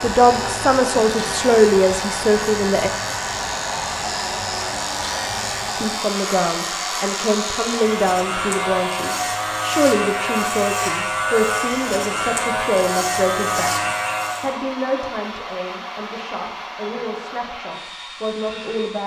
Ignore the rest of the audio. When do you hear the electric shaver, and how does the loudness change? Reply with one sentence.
The electric shaver can be heard from 0.0 to 14.6 s, getting louder.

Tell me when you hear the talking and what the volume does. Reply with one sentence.
The talking can be heard briefly from 0.0 to 2.9 s; from 5.8 to 13.7 s, at a steady volume; and from 14.4 to 19.0 s, getting quieter then louder.